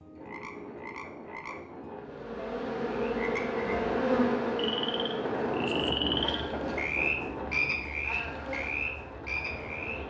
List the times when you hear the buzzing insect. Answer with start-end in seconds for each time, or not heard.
1.9-10.0.